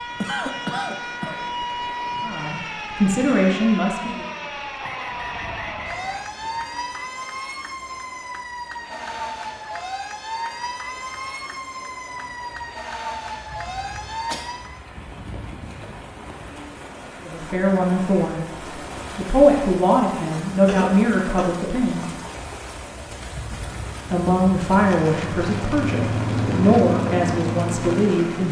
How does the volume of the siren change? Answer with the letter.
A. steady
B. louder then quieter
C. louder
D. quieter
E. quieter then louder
A.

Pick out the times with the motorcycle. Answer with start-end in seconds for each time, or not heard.
24.0-28.4.